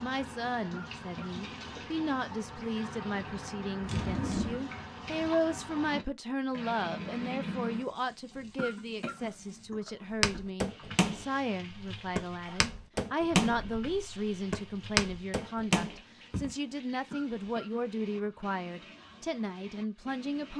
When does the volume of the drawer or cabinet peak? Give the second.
4 s.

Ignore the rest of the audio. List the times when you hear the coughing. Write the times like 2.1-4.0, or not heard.
0.7-1.4, 8.6-10.4, 17.1-18.4.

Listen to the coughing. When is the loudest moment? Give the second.
9 s.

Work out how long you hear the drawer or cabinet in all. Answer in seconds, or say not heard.
2 s.